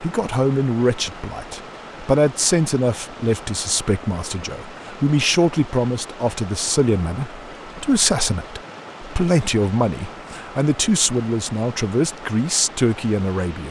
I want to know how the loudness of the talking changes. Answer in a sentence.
The volume of the talking stays about the same.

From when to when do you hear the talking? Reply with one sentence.
You can hear the talking from 0.0 to 13.6 s.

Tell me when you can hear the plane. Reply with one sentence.
The plane can't be heard in this clip.